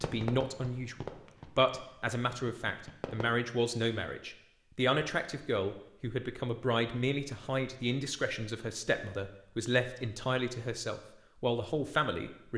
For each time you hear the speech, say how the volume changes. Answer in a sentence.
You can hear the speech from 0.0 to 12.5 s, at a steady volume.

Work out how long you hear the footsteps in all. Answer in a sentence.
The footsteps can't be heard in this clip.